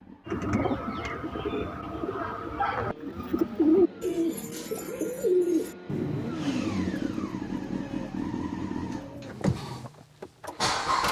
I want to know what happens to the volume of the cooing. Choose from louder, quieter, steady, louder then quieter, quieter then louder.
louder then quieter.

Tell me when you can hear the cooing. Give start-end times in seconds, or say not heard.
0.2-9.9.